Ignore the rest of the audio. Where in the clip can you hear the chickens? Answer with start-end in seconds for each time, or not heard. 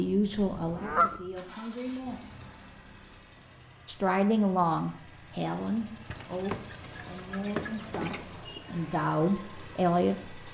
0.3-1.2, 6.0-8.7.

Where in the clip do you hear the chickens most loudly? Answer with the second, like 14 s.
1 s.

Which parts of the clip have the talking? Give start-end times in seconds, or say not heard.
0.0-2.2, 3.9-10.4.